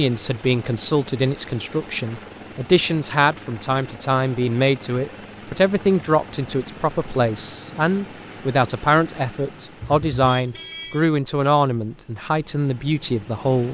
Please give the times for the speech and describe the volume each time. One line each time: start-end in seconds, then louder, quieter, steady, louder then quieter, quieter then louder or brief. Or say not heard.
0.0-13.6 steady.